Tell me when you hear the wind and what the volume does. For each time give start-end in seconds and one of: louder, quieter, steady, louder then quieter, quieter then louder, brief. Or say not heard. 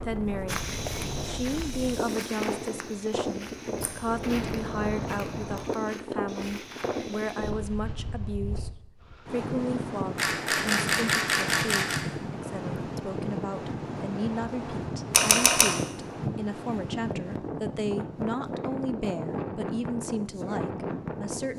0.0-21.5 steady.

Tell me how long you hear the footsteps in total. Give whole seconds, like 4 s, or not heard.
7 s.